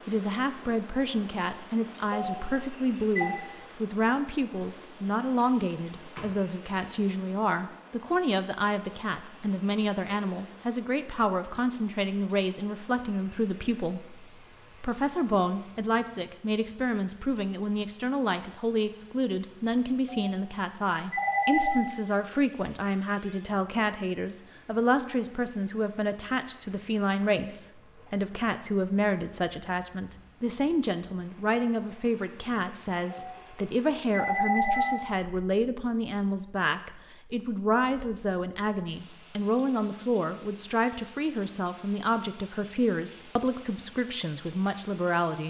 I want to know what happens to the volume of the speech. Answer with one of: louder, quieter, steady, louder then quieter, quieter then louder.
steady.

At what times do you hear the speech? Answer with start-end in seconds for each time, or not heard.
0.1-45.4.